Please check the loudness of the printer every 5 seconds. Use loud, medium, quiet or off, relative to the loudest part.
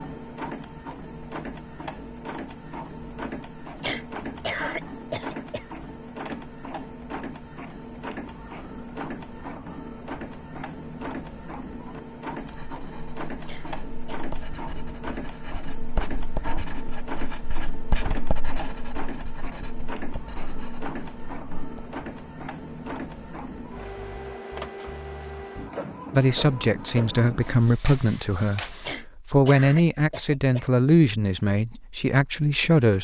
loud, loud, loud, loud, loud, loud, off.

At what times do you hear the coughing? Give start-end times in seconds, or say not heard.
3.8-5.7, 13.4-14.2, 28.8-30.7.